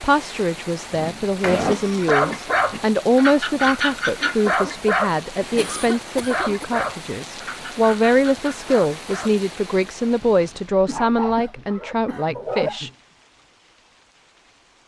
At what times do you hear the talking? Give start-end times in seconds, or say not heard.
0.0-12.9.